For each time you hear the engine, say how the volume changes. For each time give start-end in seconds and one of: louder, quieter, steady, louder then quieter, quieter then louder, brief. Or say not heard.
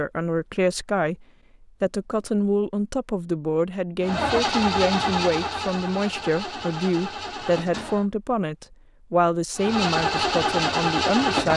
4.0-8.1 quieter
9.6-11.5 brief.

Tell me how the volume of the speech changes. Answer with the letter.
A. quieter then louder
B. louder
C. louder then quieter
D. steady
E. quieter
D.